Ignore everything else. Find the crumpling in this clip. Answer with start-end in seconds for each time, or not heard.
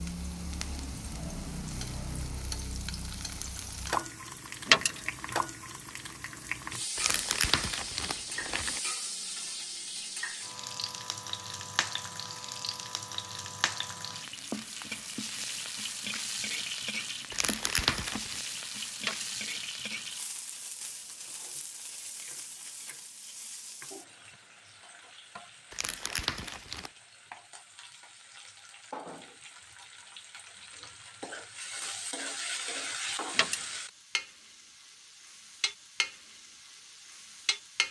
7.0-8.8, 17.3-18.4, 25.7-26.9.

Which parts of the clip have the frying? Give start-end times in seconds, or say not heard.
0.0-37.8.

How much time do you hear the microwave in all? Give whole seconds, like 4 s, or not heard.
not heard.